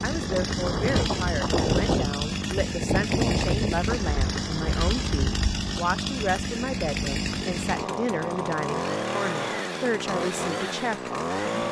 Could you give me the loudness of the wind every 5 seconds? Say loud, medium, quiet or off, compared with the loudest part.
loud, medium, off.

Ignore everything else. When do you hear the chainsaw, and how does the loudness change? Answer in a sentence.
You can hear the chainsaw from 0.0 to 11.6 s, at a steady volume.